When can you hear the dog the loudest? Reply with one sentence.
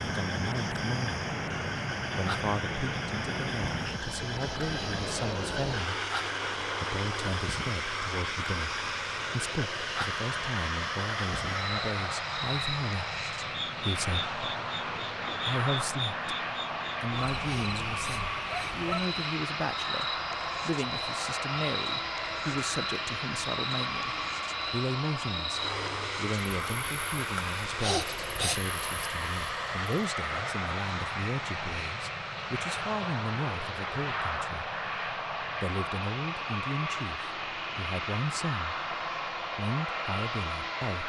The loudest moment of the dog is at 28 seconds.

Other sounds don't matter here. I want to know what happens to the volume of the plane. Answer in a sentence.
The loudness of the plane stays about the same.